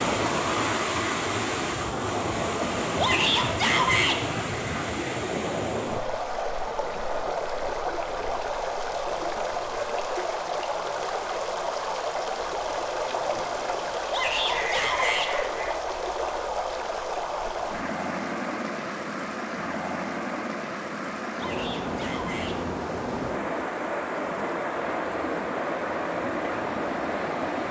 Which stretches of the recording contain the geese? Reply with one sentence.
The geese can be heard from 14.5 to 15.7 s.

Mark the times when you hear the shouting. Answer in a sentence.
The shouting can be heard from 3.0 to 4.2 s, from 14.1 to 15.3 s and from 21.4 to 22.6 s.